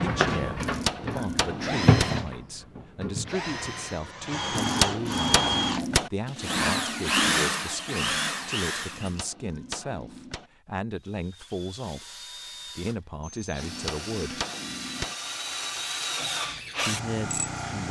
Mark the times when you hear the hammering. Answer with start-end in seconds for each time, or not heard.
0.6-2.1, 4.5-6.1, 8.9-10.5, 13.6-15.2.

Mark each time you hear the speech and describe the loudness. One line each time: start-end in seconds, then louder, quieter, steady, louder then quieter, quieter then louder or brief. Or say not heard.
0.0-14.4 steady
16.8-17.8 brief.